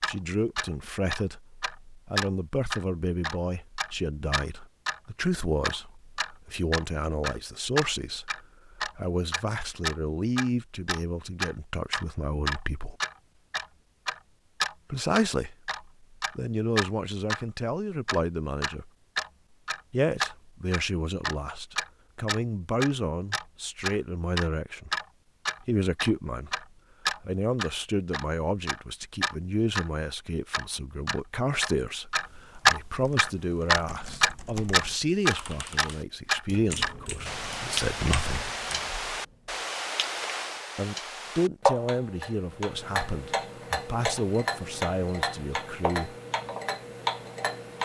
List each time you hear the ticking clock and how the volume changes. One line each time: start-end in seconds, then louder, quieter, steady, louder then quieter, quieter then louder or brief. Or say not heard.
0.0-17.4 steady
18.1-47.8 louder then quieter.